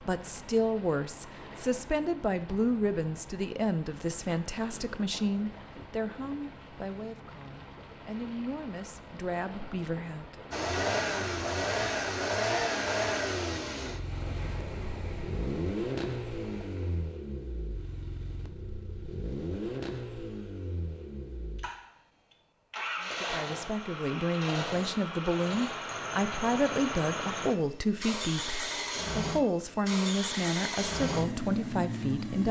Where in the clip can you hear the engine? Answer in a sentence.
You can hear the engine from 10.5 to 32.4 s.